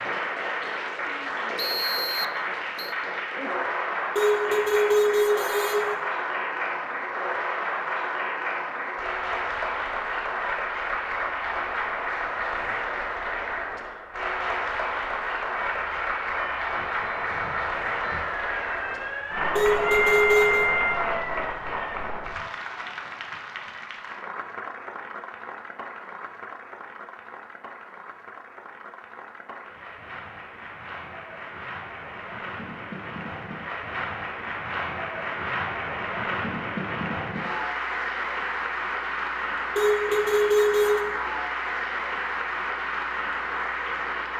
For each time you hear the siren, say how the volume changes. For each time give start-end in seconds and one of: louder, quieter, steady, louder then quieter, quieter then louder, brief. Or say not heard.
15.6-22.0 louder.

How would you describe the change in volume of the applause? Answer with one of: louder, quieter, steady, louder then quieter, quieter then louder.
quieter then louder.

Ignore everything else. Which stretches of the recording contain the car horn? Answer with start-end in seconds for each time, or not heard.
4.2-6.0, 19.6-20.6, 39.8-41.0.